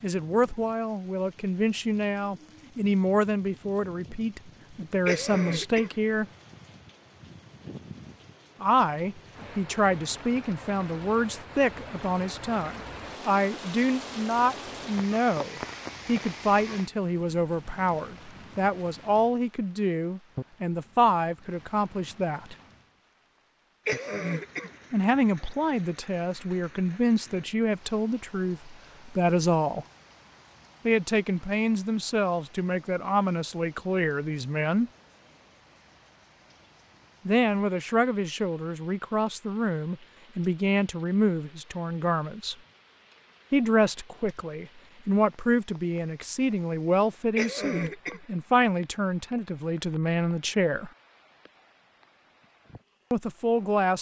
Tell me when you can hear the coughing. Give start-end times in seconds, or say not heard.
5.0-6.0, 23.9-24.8, 47.4-48.2.